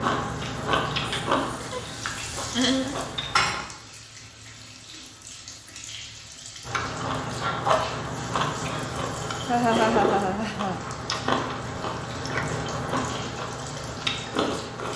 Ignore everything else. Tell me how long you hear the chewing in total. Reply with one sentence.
The chewing can be heard for 12 seconds in total.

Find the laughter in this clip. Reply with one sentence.
The laughter can be heard from 1.1 to 3.1 s and from 9.4 to 10.8 s.